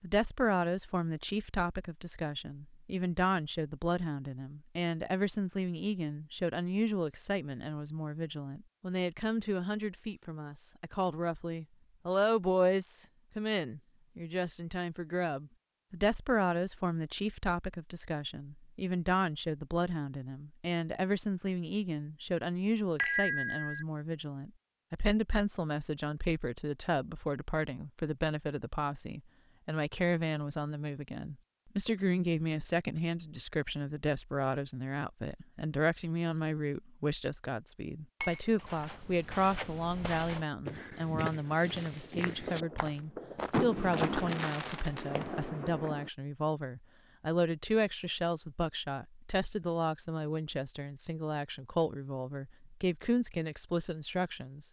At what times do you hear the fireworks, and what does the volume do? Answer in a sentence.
You can hear the fireworks from 42.0 to 46.1 s, getting louder then quieter.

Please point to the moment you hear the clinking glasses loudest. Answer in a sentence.
The loudest moment of the clinking glasses is at 23 seconds.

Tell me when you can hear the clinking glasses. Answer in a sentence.
The clinking glasses can be heard from 22.9 to 23.9 s and from 38.2 to 38.9 s.